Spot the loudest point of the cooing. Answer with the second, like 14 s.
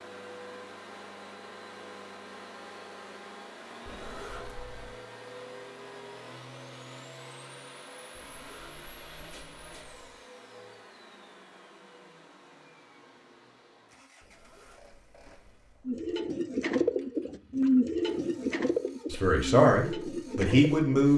18 s.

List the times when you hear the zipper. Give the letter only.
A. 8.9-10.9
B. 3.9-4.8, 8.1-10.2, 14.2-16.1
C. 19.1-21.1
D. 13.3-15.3
B.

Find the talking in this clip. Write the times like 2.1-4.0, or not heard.
19.1-21.1.